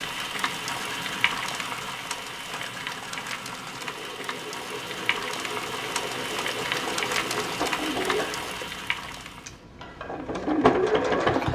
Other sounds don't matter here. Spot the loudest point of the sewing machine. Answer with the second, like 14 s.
11 s.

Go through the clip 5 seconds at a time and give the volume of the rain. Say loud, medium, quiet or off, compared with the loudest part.
loud, loud, off.